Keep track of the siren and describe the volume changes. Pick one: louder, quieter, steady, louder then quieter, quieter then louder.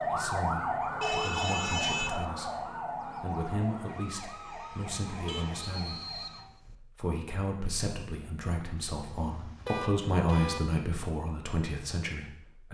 quieter.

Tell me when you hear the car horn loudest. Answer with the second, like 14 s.
2 s.